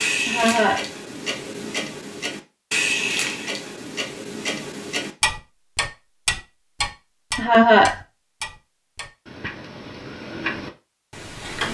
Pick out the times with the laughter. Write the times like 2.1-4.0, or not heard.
0.2-0.8, 7.3-8.0.